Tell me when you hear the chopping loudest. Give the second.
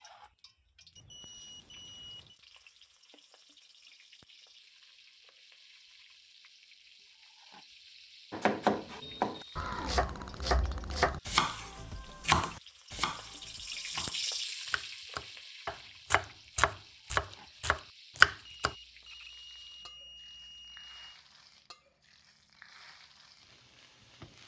18 s.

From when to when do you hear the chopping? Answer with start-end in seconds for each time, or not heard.
8.3-18.8.